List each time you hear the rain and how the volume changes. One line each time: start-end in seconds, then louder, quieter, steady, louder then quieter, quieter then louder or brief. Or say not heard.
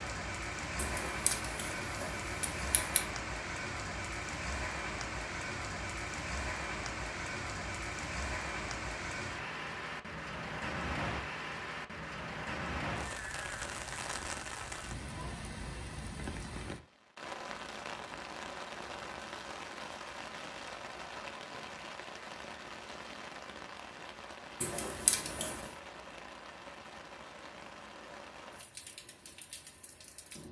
0.0-30.4 quieter.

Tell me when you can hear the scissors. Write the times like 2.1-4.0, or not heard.
0.8-3.0, 24.6-25.7.